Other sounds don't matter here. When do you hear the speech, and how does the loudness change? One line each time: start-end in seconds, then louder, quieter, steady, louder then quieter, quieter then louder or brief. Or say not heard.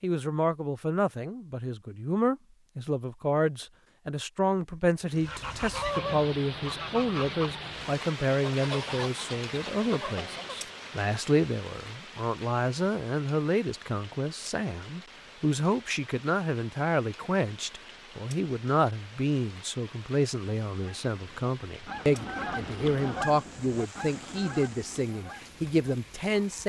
0.0-26.6 steady.